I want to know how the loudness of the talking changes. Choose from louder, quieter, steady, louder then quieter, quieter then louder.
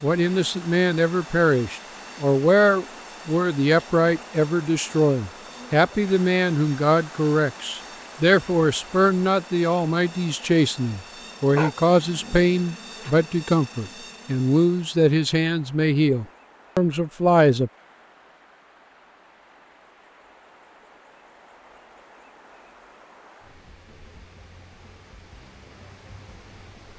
steady.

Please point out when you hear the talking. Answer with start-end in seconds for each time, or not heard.
0.0-17.7.